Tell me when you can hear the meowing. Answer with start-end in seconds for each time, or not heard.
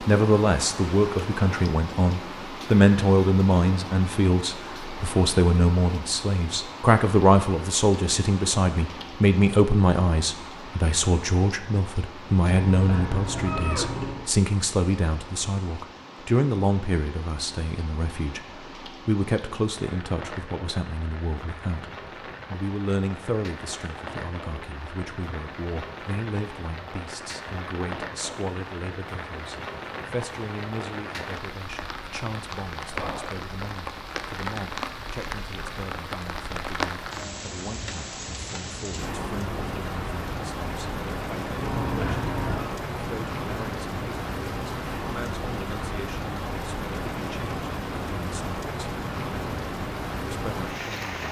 12.5-14.3, 41.6-42.7.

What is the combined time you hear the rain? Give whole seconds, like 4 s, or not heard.
51 s.